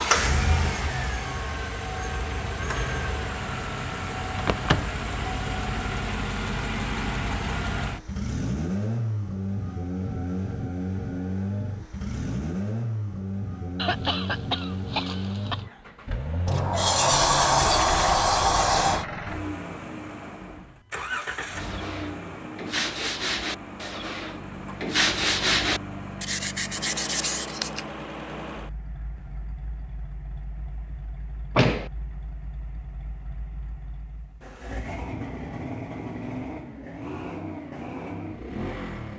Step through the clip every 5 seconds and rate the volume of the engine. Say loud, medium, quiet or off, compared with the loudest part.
loud, loud, loud, medium, medium, medium, quiet, medium.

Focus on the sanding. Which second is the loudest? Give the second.
25 s.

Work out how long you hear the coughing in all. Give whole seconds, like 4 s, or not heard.
2 s.